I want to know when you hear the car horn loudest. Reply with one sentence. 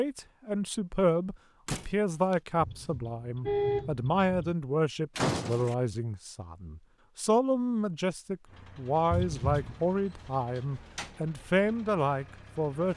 The volume of the car horn peaks at 4 seconds.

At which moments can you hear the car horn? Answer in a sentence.
You can hear the car horn from 2.6 to 4.5 s and from 9.1 to 9.8 s.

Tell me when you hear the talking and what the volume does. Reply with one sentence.
You can hear the talking from 0.0 to 12.9 s, at a steady volume.